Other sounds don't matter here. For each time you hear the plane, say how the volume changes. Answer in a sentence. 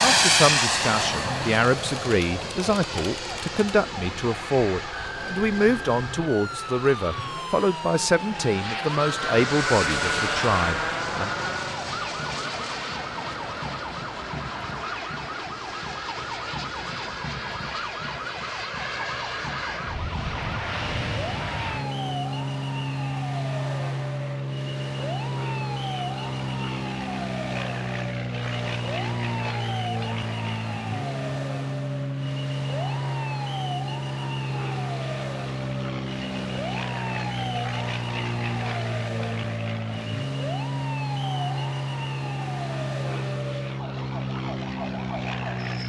You can hear the plane from 0.0 to 45.8 s, at a steady volume.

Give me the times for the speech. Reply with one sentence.
The speech can be heard from 0.0 to 11.3 s.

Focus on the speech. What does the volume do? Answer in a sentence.
The loudness of the speech stays about the same.